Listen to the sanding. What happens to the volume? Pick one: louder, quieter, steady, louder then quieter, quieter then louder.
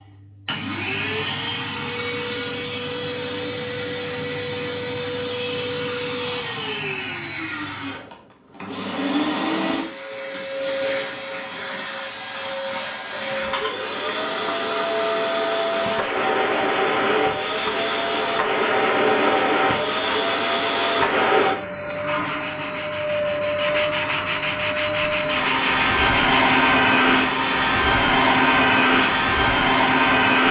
louder.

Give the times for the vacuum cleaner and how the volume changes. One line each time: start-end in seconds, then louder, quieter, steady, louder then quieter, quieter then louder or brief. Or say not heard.
0.0-30.4 louder.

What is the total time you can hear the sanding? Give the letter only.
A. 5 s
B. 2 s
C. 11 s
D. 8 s
C.